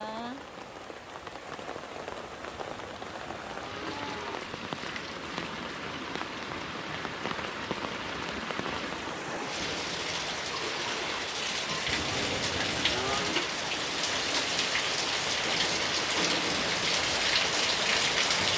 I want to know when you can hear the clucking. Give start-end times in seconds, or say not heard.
not heard.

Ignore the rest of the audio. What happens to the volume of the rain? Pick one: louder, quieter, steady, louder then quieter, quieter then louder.
louder.